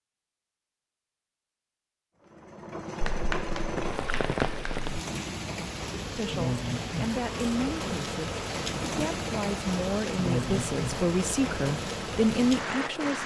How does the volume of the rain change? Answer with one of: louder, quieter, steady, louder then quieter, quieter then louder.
steady.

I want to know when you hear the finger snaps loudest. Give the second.
3 s.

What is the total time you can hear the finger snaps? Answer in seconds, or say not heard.
2 s.